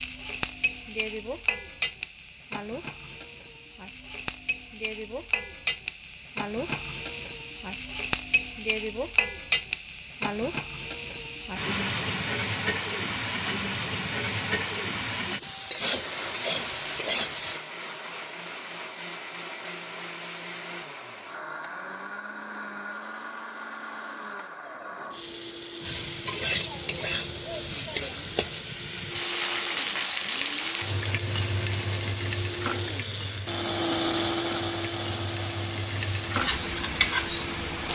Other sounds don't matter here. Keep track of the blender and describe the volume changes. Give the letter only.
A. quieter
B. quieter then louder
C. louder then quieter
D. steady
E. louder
E.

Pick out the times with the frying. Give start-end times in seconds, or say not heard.
0.0-17.6, 25.8-37.9.